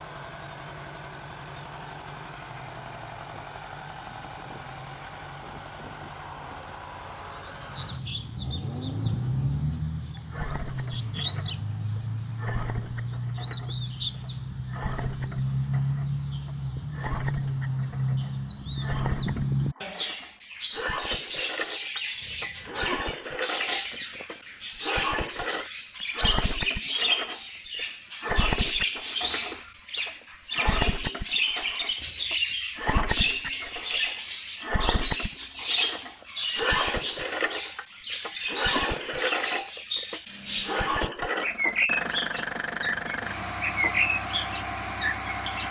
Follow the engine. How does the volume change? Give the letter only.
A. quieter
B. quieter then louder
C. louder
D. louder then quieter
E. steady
C.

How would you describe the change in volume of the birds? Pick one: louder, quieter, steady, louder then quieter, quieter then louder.
louder.